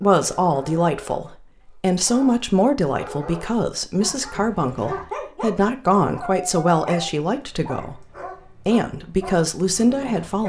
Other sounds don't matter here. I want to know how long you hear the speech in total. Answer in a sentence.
You can hear the speech for 10 seconds altogether.